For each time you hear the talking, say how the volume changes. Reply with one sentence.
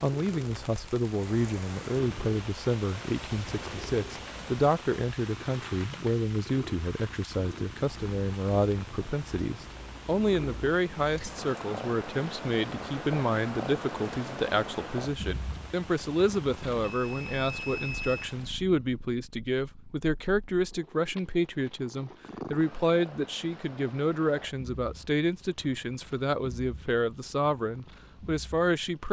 You can hear the talking from 0.0 to 29.0 s, at a steady volume.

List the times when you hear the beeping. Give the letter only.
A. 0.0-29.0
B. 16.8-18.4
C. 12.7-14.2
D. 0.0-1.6
B.